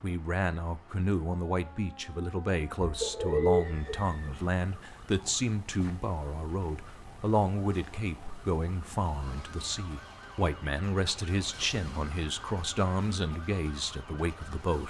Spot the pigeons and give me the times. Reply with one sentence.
You can hear the pigeons from 2.8 to 4.5 s.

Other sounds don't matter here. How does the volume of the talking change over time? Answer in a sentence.
The loudness of the talking stays about the same.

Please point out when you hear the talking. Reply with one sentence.
You can hear the talking from 0.0 to 14.8 s.